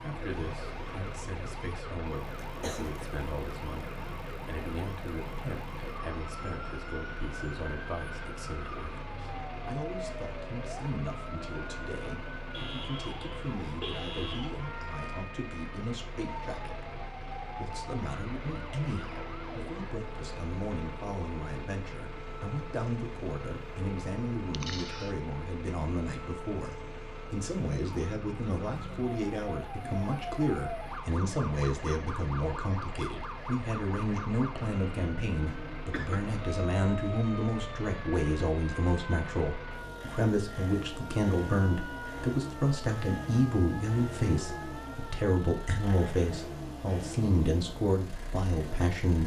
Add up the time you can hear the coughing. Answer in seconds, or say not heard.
2 s.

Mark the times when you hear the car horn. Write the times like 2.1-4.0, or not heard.
12.5-14.5.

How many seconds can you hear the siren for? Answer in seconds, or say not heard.
46 s.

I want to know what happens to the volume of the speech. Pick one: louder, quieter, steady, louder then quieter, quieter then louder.
louder.